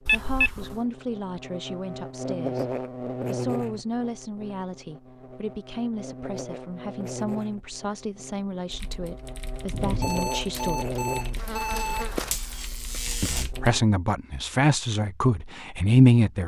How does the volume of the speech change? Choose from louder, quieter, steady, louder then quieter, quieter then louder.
louder.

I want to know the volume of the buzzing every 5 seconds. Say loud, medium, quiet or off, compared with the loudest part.
loud, medium, loud, off.